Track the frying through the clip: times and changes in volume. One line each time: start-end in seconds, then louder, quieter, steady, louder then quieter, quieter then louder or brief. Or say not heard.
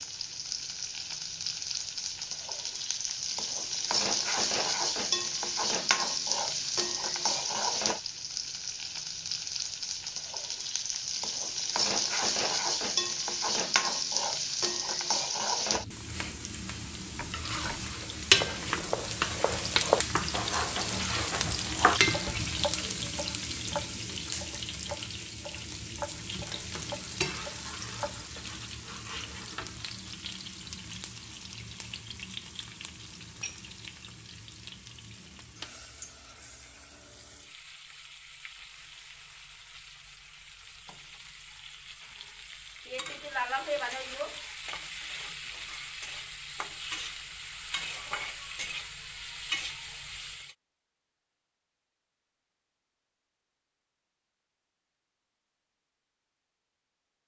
0.0-50.5 quieter then louder.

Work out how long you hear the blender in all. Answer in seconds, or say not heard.
not heard.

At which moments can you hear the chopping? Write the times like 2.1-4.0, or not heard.
17.1-28.6.